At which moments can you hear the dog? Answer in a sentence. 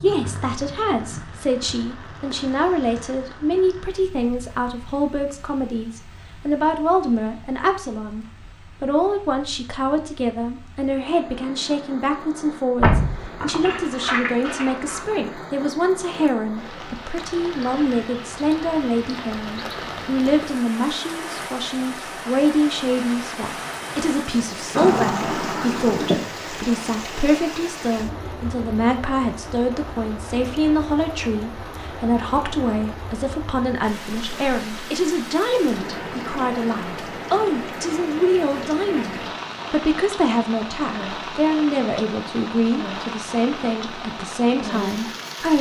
The dog can't be heard in this clip.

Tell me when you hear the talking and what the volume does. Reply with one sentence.
You can hear the talking from 0.0 to 45.5 s, at a steady volume.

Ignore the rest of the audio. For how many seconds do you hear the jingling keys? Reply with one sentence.
The jingling keys can be heard for 4 seconds in total.